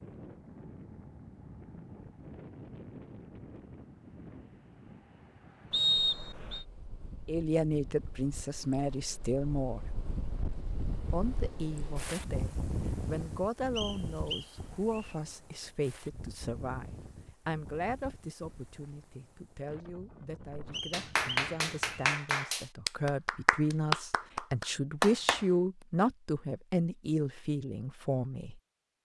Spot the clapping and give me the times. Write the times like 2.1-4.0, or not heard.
20.7-25.4.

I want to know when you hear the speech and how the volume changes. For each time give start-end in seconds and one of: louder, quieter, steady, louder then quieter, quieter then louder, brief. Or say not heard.
7.2-9.8 brief
11.1-28.6 quieter then louder.